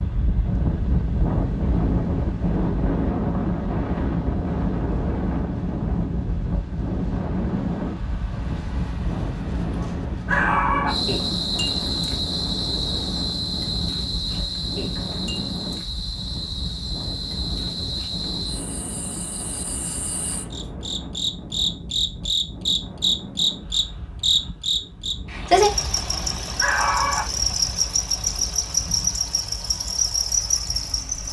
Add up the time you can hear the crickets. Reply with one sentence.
The crickets can be heard for 20 seconds in total.